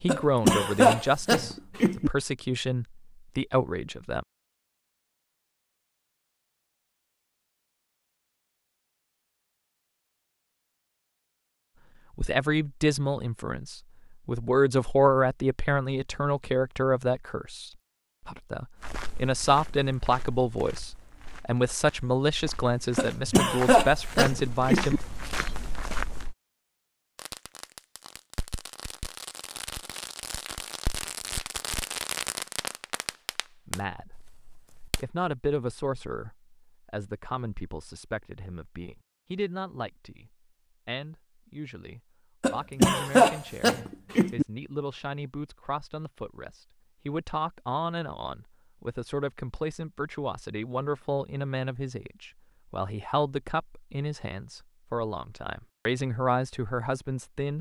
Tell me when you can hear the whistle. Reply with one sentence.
You can't hear the whistle here.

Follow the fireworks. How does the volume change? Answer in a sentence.
The loudness of the fireworks goes up, then down.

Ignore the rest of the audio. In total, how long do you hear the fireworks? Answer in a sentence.
The fireworks can be heard for 8 seconds in total.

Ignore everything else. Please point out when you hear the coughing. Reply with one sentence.
The coughing can be heard from 0.1 to 2.1 s, from 22.9 to 25.0 s and from 42.4 to 44.5 s.